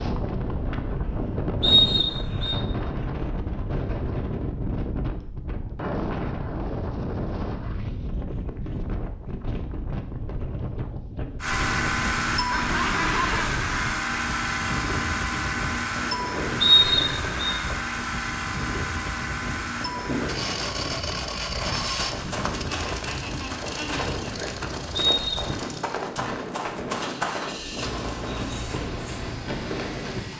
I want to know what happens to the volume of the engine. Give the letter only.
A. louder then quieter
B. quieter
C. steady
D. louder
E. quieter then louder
B.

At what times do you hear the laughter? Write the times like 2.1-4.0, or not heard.
12.4-13.6, 22.6-24.1.